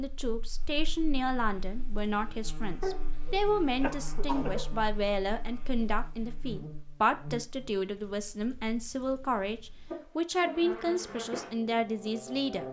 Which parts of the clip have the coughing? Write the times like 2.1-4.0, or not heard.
2.8-4.8.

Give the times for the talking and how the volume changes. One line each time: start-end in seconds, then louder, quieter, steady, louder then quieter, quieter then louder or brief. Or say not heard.
0.0-12.6 steady.